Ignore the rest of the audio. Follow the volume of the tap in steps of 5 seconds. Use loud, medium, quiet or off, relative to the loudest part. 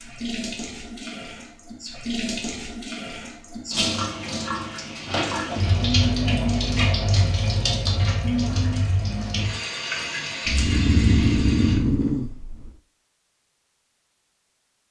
medium, loud, medium.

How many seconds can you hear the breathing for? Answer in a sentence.
The breathing can be heard for 2 seconds in total.